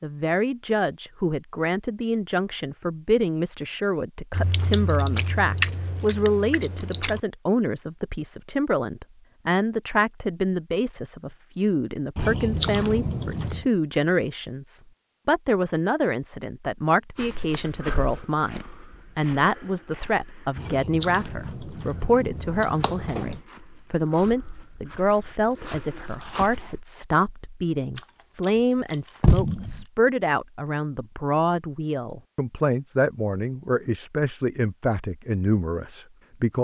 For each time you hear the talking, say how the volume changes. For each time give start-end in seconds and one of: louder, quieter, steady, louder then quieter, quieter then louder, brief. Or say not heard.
0.0-36.5 steady.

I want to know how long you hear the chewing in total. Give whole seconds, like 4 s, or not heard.
9 s.